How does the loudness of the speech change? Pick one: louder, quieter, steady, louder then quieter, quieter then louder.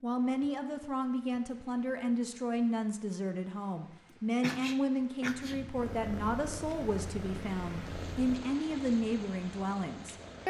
steady.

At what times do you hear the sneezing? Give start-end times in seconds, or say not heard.
4.4-5.6.